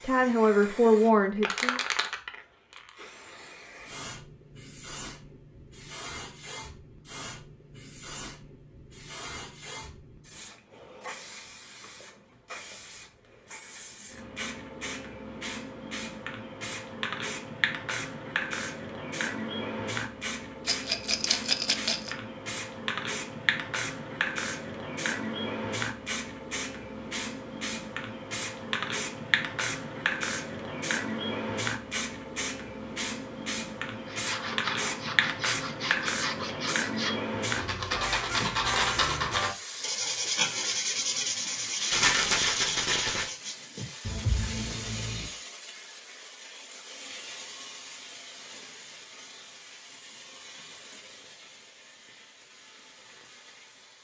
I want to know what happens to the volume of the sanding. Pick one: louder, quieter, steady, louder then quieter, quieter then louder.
louder then quieter.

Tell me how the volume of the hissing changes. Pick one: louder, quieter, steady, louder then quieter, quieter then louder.
louder then quieter.